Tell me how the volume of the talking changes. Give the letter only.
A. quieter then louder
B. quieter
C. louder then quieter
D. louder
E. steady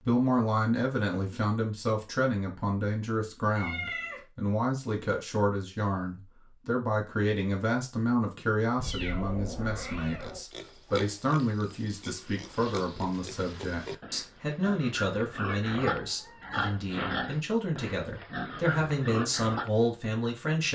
E.